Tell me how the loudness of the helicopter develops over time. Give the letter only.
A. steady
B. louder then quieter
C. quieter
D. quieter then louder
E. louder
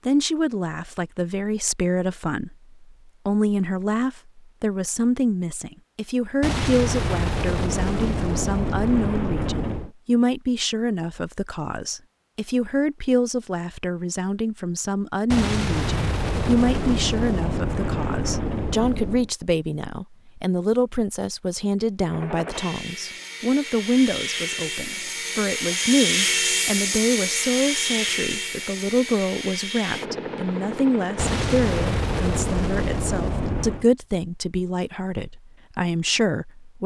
B.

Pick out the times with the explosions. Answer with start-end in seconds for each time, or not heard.
6.4-9.9, 15.3-19.3, 31.1-33.9.